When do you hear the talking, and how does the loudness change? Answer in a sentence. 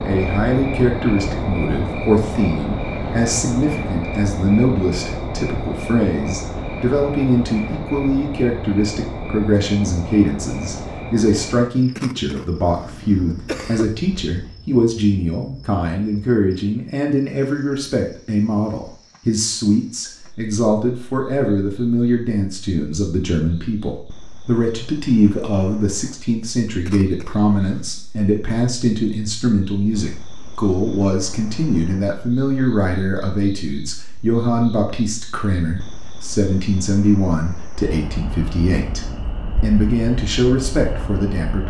The talking can be heard from 0.0 to 41.6 s, at a steady volume.